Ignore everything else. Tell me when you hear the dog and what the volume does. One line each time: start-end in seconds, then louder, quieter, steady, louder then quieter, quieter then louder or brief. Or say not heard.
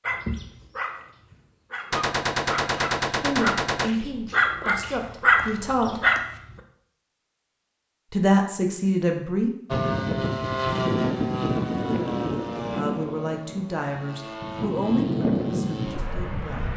0.0-6.2 louder.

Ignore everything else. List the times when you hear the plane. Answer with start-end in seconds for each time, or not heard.
9.7-16.7.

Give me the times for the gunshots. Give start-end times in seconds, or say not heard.
1.9-3.9.